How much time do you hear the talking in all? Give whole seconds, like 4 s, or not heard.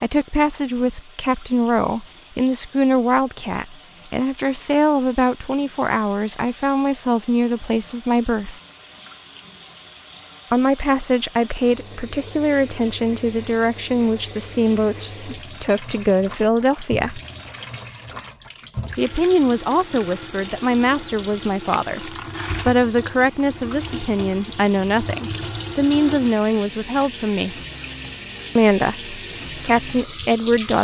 26 s.